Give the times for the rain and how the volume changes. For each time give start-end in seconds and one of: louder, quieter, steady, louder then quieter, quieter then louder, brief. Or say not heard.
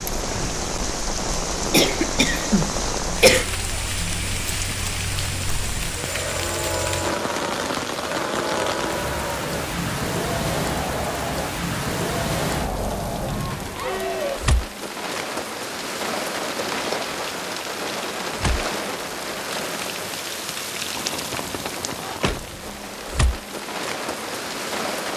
0.0-25.1 steady.